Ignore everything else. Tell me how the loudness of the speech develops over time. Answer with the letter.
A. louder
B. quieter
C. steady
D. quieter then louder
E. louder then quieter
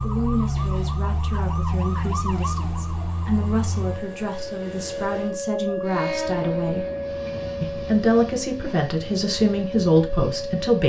A.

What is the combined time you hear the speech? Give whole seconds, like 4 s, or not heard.
10 s.